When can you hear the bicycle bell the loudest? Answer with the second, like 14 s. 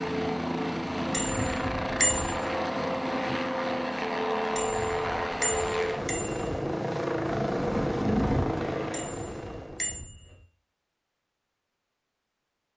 2 s.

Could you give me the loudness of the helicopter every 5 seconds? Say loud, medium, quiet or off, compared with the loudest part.
loud, loud, off.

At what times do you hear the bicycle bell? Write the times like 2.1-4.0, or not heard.
1.1-2.4, 4.5-6.7, 8.9-10.4.